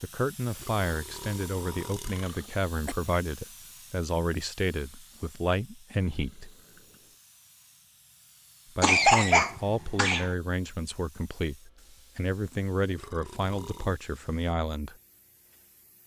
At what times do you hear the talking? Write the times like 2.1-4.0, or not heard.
0.0-6.5, 8.8-14.9.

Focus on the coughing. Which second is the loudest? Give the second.
9 s.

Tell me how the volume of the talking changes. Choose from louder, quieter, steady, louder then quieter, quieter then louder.
steady.